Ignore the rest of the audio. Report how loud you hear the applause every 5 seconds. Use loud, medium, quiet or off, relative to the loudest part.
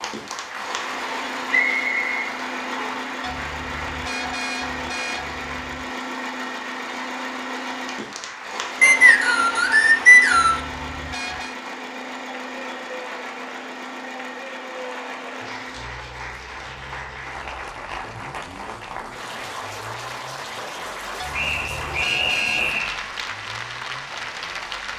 loud, medium, medium, loud, loud.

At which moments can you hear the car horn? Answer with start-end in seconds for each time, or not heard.
3.2-6.0, 10.3-11.6, 21.1-22.8.